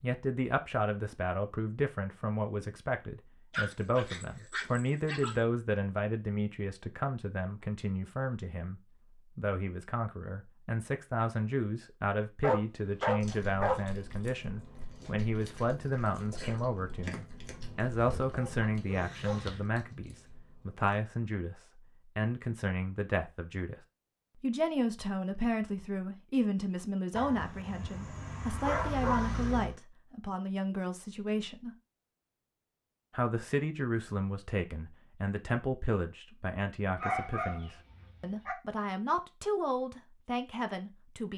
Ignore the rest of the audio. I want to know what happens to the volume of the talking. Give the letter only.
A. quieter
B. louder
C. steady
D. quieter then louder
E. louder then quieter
C.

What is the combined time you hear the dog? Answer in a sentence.
You can hear the dog for 9 seconds altogether.